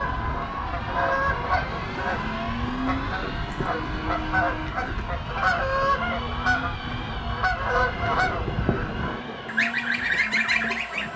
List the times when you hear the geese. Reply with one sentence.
The geese can be heard from 0.0 to 11.1 s.